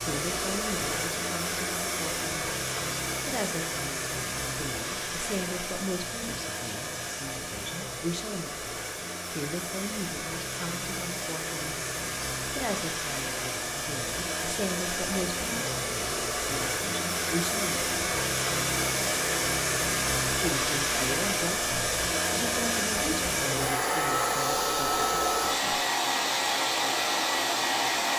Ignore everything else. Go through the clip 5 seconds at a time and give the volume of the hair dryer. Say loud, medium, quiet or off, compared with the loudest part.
medium, medium, medium, loud, loud, loud.